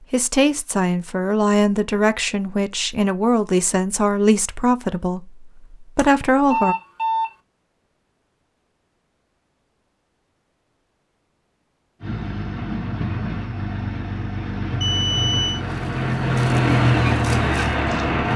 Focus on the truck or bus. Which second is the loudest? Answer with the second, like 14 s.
17 s.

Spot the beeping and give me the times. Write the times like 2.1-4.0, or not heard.
6.0-7.3, 14.8-15.6.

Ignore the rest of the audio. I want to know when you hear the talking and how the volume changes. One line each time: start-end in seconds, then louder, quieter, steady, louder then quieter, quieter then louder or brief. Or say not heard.
0.1-6.8 steady.